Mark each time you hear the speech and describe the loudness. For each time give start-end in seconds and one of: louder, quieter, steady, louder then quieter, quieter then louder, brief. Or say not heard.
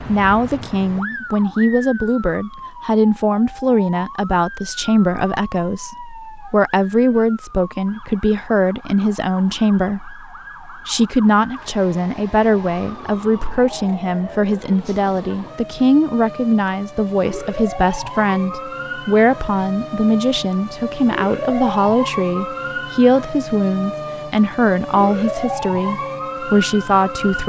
0.0-27.4 steady.